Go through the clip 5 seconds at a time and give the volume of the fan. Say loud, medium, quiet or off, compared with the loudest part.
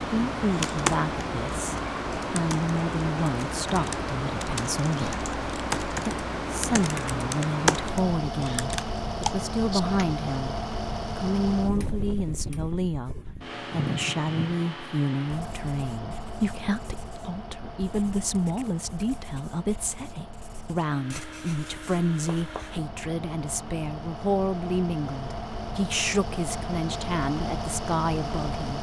loud, loud, loud, medium, medium, loud.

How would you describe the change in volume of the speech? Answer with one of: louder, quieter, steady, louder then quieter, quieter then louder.
steady.